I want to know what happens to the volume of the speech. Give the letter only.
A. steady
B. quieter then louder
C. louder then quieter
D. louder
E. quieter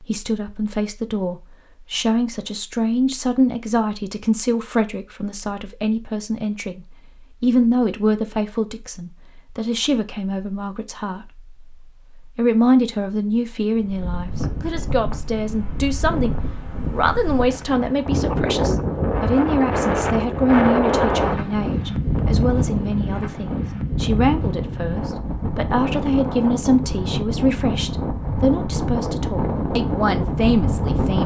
A.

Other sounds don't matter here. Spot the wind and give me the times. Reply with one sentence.
The wind can be heard from 13.8 to 31.2 s.